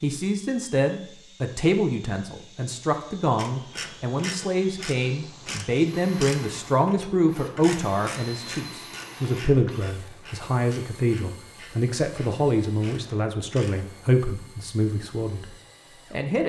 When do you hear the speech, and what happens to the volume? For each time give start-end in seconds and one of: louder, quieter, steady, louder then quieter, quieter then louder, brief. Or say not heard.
0.0-16.4 steady.